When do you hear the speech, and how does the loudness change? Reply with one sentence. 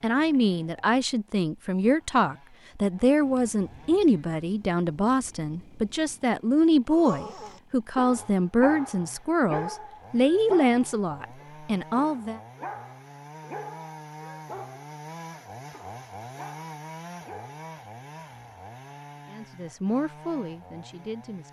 The speech can be heard from 0.0 to 12.4 s, at a steady volume; and briefly from 19.2 to 21.4 s.